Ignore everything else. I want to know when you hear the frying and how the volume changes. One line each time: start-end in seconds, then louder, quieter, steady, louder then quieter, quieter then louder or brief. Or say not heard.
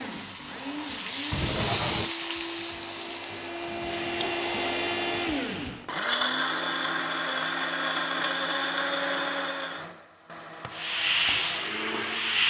0.0-5.8 louder then quieter
10.7-12.4 brief.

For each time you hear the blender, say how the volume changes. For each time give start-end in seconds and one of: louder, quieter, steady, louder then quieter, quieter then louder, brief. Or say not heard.
0.0-12.4 louder then quieter.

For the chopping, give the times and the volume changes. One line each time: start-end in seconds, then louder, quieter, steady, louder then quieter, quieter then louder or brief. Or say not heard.
not heard.